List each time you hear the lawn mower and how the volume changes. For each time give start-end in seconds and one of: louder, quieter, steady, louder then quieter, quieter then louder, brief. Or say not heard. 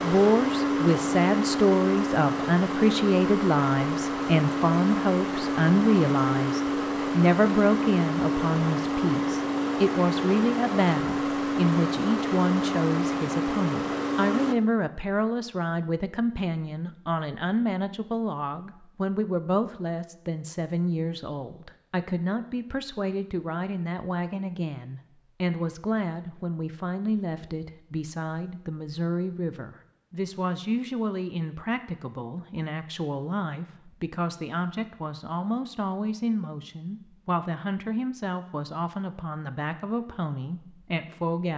0.0-14.6 steady.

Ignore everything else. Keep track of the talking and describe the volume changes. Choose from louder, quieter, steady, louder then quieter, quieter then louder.
quieter.